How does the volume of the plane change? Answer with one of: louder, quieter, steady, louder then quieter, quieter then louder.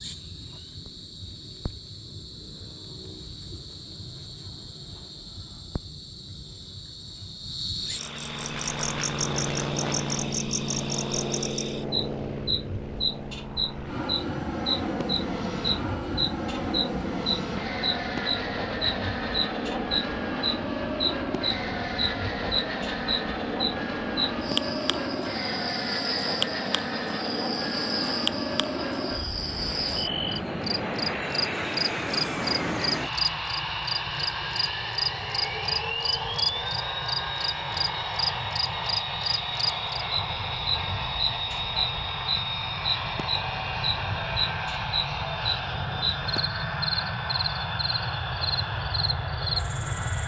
steady.